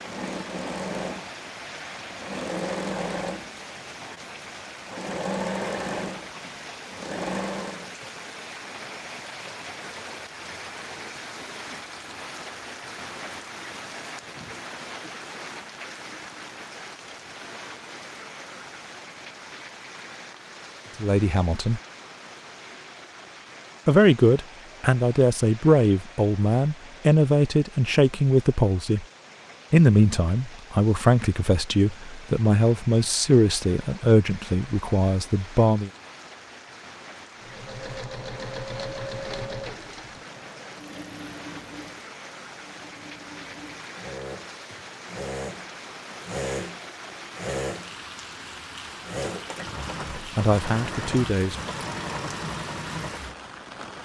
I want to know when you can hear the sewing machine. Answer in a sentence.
You can hear the sewing machine from 0.0 to 8.0 s and from 37.4 to 53.5 s.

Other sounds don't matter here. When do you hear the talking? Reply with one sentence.
The talking can be heard from 21.0 to 21.8 s, from 23.9 to 29.1 s, from 29.7 to 35.9 s and from 50.1 to 51.5 s.